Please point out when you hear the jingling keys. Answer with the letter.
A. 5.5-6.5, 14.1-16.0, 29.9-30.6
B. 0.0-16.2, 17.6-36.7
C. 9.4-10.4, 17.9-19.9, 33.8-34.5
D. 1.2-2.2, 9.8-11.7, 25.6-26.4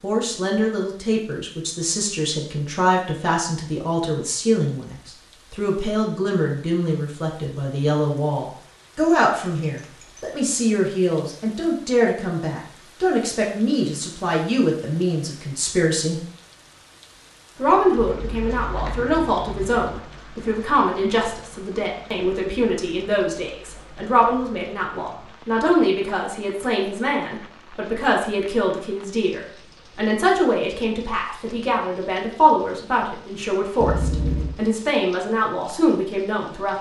C.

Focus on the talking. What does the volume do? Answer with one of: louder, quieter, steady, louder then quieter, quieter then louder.
steady.